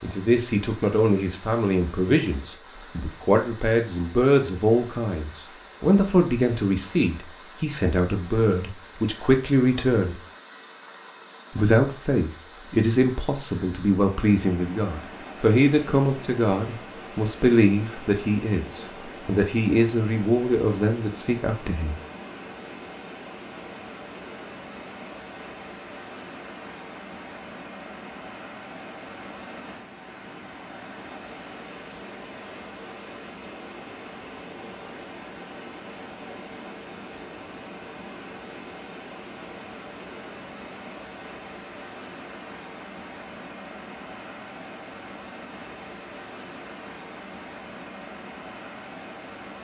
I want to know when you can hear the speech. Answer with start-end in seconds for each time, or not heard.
0.0-10.2, 11.6-22.0.